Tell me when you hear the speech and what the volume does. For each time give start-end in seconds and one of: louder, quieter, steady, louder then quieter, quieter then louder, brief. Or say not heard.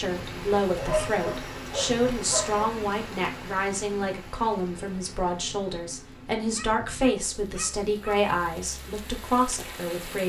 0.0-10.2 steady.